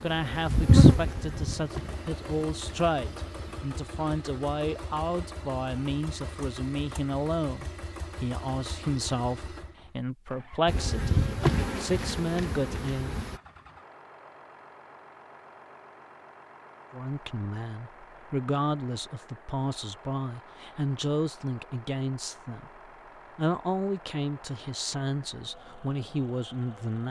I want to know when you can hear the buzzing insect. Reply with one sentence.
You can hear the buzzing insect from 0.0 to 3.6 s and from 10.7 to 13.3 s.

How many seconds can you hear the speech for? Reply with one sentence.
The speech can be heard for 23 seconds in total.